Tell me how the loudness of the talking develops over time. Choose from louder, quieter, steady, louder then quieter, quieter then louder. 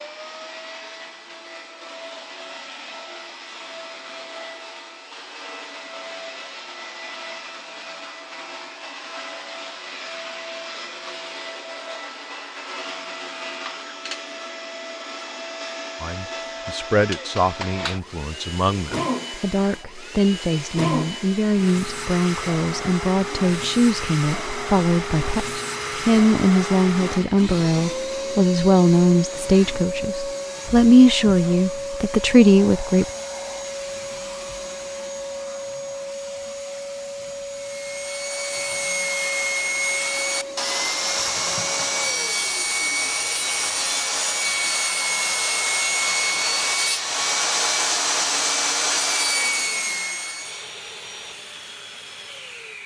louder.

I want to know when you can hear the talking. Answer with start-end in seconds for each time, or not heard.
16.0-33.0.